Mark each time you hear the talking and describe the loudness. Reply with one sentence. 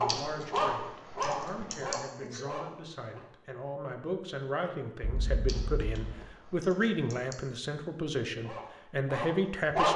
You can hear the talking from 0.0 to 9.9 s, getting louder.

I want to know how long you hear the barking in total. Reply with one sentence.
The barking can be heard for 5 seconds in total.